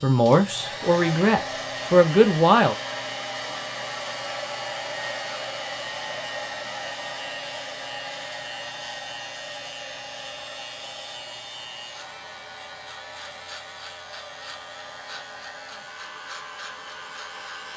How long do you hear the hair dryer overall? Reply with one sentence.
The hair dryer can be heard for 18 seconds in total.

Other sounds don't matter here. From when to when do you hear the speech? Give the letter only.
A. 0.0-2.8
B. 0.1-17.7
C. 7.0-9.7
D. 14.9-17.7
A.